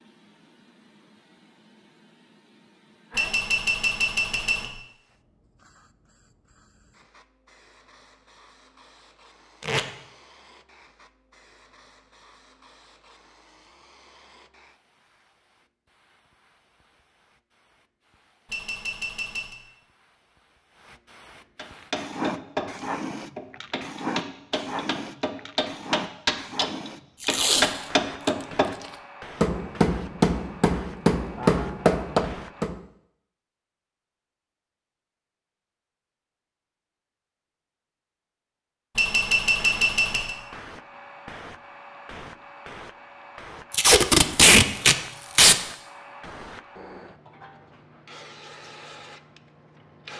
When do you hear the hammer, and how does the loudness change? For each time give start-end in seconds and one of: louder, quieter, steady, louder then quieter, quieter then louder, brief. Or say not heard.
21.6-32.8 louder.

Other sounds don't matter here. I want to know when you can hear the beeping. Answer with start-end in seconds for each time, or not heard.
3.1-4.7, 18.4-19.6, 39.0-40.4.